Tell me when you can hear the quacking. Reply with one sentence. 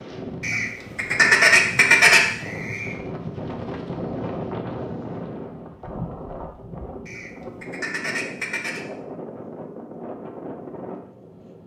You can hear the quacking from 0.4 to 2.9 s and from 7.0 to 8.8 s.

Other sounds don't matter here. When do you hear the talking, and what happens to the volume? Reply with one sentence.
You can't hear the talking here.